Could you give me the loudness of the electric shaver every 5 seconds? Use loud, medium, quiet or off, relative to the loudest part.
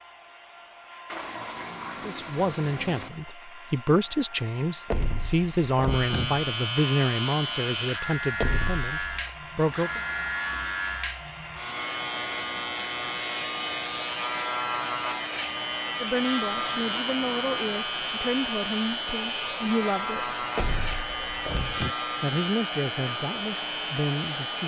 off, loud, loud, loud, loud.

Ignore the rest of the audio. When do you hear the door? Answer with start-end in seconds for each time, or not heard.
4.9-6.5, 8.4-9.2, 20.6-21.9.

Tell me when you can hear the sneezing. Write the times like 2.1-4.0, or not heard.
not heard.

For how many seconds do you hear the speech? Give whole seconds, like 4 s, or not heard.
15 s.